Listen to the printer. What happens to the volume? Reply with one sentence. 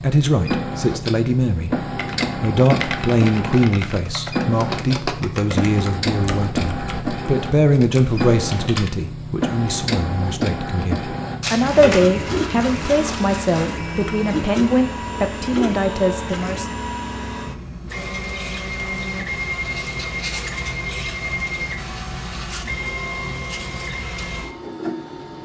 The volume of the printer stays about the same.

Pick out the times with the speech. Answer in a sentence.
You can hear the speech from 0.0 to 1.8 s and from 2.4 to 16.6 s.